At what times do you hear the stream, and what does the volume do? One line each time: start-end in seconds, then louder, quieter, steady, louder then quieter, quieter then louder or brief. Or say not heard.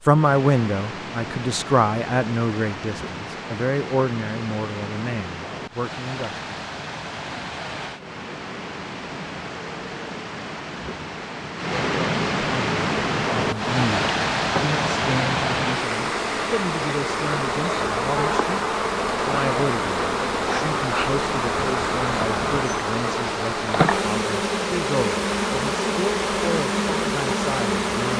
0.0-28.1 louder then quieter.